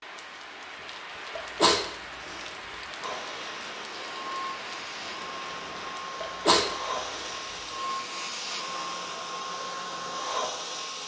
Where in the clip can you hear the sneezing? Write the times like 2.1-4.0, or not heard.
1.4-2.9, 6.2-7.7.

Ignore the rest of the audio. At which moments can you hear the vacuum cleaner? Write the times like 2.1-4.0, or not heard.
3.0-11.0.